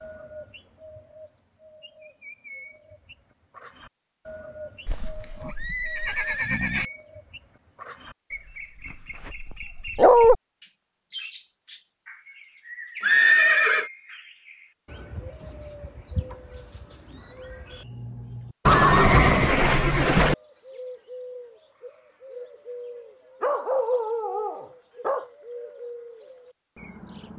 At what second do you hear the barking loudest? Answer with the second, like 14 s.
10 s.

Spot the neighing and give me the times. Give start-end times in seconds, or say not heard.
4.8-6.9, 13.0-13.8, 18.6-20.4.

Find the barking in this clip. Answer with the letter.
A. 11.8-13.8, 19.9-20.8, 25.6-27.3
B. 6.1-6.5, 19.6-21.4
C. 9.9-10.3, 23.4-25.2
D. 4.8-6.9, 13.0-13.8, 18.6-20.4
C.